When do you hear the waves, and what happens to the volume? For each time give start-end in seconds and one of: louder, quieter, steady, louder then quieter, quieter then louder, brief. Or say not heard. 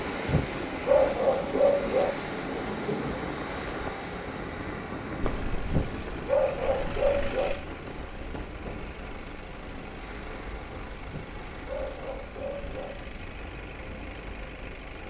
0.0-15.0 quieter.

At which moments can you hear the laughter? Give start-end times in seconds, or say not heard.
2.9-3.6.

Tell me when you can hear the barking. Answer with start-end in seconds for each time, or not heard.
0.2-2.1, 5.7-7.5, 11.1-12.9.